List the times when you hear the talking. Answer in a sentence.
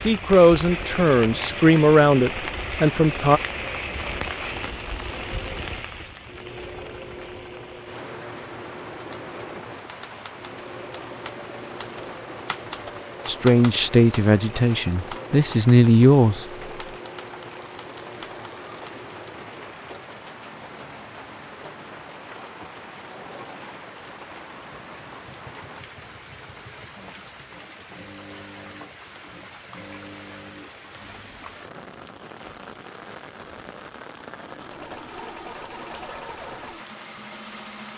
The talking can be heard from 0.1 to 3.4 s and from 13.2 to 16.4 s.